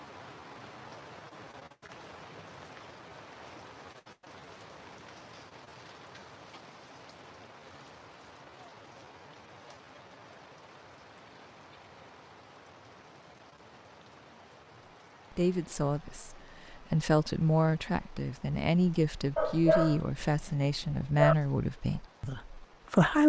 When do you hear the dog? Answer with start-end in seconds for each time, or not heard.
19.4-21.4.